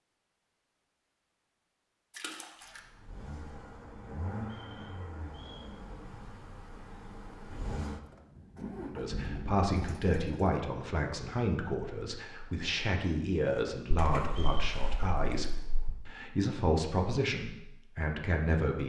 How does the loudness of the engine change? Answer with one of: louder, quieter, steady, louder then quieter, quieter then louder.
quieter then louder.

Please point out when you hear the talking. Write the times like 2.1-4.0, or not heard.
8.8-18.8.